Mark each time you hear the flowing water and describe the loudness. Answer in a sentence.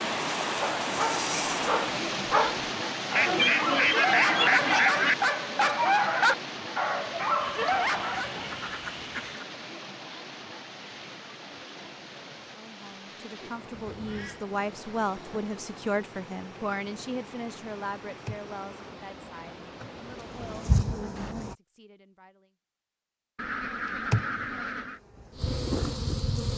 You can hear the flowing water from 0.0 to 21.4 s, getting quieter.